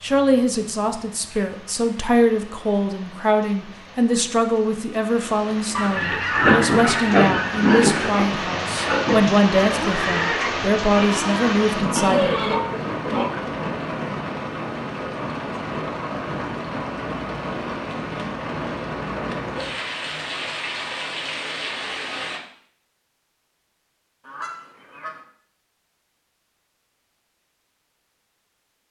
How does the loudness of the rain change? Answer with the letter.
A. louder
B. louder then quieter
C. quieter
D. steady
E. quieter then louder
A.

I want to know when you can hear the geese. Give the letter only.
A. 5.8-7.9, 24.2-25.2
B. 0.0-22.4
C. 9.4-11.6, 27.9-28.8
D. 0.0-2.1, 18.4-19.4
A.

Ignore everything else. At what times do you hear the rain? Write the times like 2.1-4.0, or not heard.
0.0-22.4.